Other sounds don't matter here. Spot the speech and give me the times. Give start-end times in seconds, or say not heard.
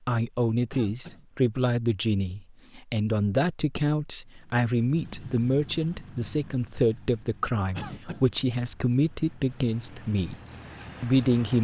0.1-10.3, 11.0-11.5.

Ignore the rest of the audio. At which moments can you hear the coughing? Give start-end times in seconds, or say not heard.
0.7-1.2, 7.8-8.2.